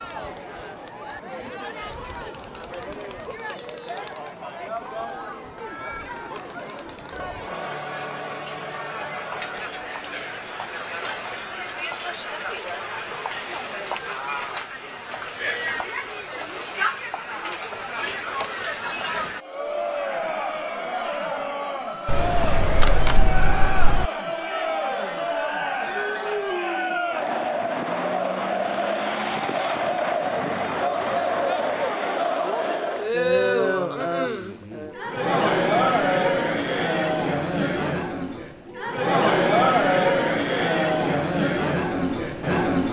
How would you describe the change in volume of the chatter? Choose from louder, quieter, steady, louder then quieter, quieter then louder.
louder.